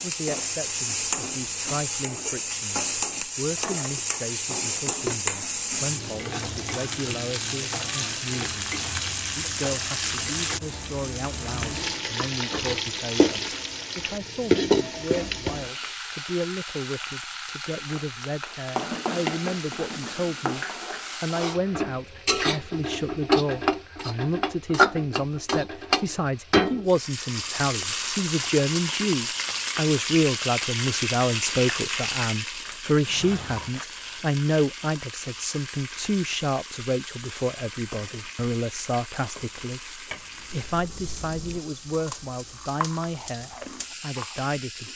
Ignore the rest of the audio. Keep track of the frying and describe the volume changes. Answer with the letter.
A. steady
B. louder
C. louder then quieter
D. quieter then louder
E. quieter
E.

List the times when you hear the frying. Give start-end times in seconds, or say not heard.
0.0-44.9.